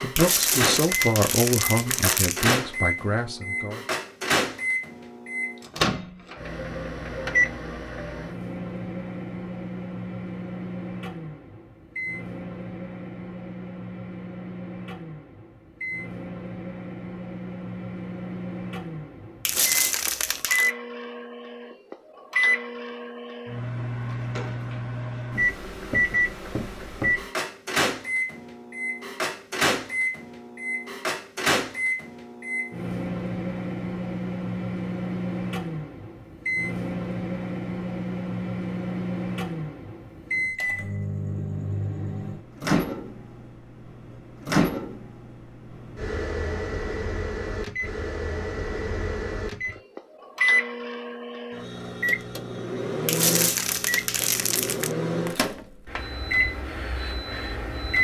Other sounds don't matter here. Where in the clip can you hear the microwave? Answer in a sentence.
The microwave can be heard from 0.0 to 58.0 s.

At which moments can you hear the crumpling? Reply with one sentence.
You can hear the crumpling from 0.1 to 2.5 s, from 19.4 to 20.7 s and from 53.0 to 55.0 s.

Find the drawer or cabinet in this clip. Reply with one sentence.
The drawer or cabinet can't be heard in this clip.